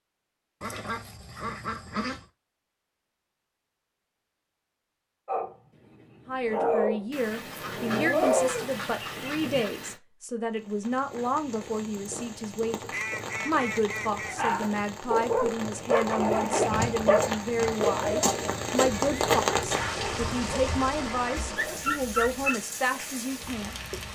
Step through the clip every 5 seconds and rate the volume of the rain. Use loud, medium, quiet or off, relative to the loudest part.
off, off, medium, loud, medium.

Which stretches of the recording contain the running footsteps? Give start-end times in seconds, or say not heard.
not heard.